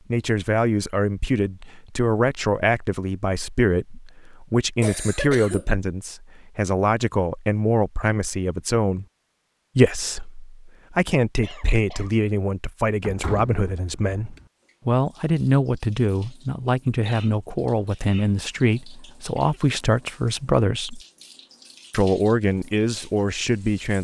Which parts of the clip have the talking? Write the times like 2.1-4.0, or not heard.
0.1-9.1, 9.8-21.0, 21.9-23.9.